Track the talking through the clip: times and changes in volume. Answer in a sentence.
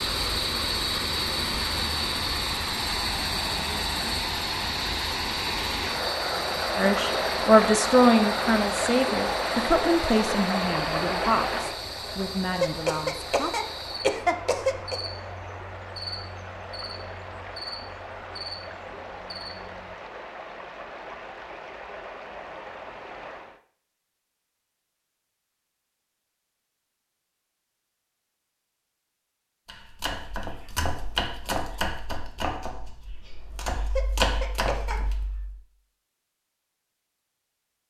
You can hear the talking from 6.8 to 13.6 s, getting quieter.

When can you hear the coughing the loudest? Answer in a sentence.
The volume of the coughing peaks at 14 seconds.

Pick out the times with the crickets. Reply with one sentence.
You can hear the crickets from 0.0 to 19.9 s.